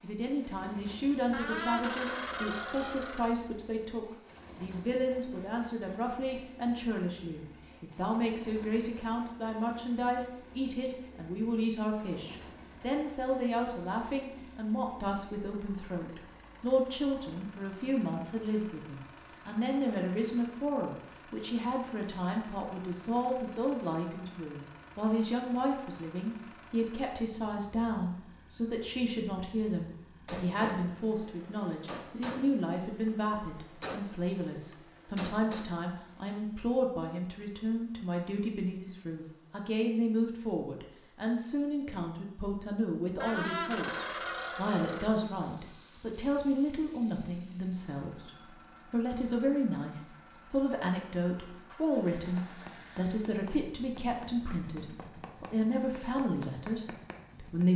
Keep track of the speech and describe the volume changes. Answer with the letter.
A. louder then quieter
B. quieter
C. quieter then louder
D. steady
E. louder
D.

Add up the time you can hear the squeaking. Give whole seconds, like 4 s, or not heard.
4 s.